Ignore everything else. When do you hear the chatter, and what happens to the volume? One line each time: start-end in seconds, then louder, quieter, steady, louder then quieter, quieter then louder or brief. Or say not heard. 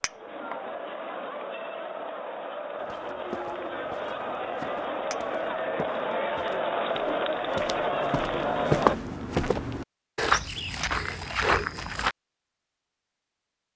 0.0-8.9 louder.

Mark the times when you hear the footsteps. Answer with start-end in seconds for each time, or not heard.
2.8-12.2.